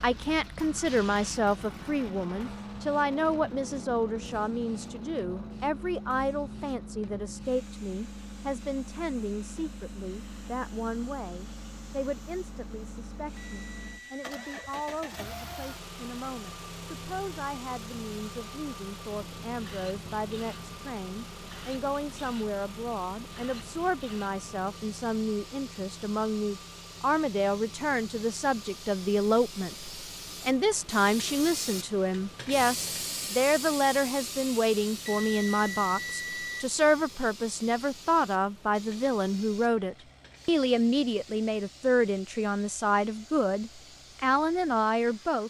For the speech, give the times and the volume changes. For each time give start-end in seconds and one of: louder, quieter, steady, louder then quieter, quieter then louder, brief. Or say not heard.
0.0-45.4 quieter then louder.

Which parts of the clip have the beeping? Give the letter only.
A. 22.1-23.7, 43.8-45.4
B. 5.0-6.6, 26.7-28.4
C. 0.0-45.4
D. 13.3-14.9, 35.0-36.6
D.